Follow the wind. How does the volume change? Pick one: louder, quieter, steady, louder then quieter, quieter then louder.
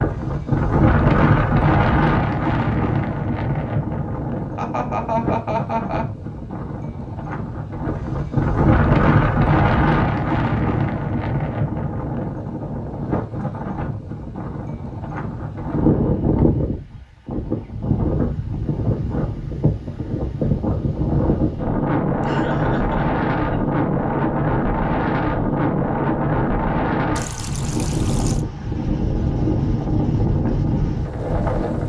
steady.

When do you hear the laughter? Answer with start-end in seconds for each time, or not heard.
4.5-6.0, 22.2-23.6.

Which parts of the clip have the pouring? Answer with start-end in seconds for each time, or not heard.
27.1-28.4.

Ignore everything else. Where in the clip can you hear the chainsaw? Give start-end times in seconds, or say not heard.
not heard.